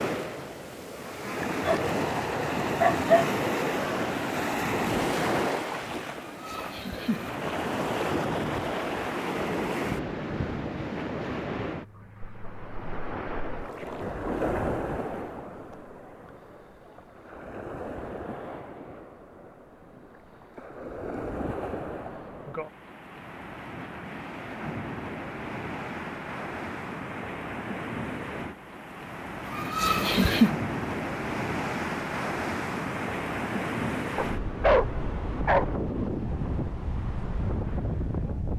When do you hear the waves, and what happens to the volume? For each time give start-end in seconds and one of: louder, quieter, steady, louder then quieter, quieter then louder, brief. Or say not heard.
0.0-38.5 quieter then louder.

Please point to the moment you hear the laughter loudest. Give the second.
30 s.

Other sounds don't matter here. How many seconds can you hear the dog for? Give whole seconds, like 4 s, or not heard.
3 s.